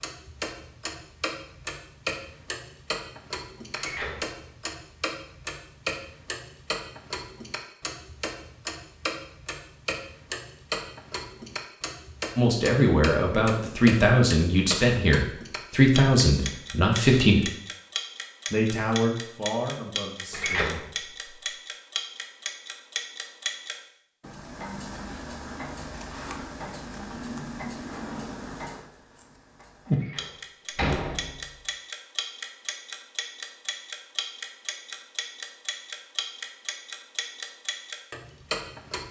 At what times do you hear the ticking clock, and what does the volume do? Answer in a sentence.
The ticking clock can be heard from 0.0 to 39.0 s, at a steady volume.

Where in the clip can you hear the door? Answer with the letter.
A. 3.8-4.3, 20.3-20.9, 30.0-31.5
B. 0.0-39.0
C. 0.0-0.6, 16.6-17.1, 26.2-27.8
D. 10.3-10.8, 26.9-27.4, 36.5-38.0
A.